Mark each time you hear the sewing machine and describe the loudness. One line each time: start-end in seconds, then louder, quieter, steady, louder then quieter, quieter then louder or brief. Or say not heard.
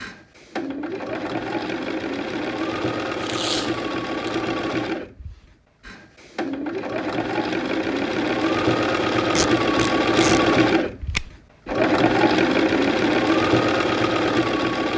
0.0-14.9 louder.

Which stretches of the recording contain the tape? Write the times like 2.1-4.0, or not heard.
3.2-4.3, 9.3-10.4.